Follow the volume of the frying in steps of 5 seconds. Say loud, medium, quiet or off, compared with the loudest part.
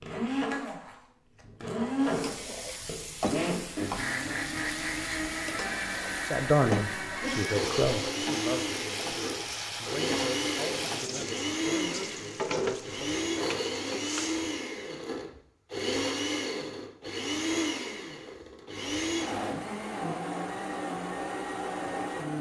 loud, loud, loud, off, off.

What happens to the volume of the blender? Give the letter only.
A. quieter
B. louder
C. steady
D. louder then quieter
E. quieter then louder
C.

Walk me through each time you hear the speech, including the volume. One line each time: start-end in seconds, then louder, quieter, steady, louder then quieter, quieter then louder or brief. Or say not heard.
6.2-13.2 quieter.